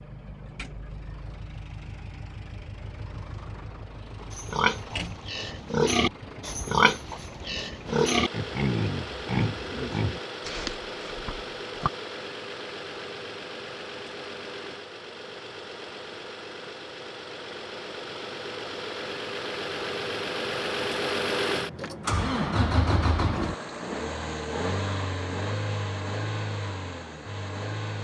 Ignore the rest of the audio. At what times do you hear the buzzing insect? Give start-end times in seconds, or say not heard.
not heard.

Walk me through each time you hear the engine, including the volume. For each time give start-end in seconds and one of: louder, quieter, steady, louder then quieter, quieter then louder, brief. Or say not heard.
0.0-27.9 louder.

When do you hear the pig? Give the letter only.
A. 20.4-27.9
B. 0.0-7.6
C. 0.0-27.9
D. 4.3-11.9
D.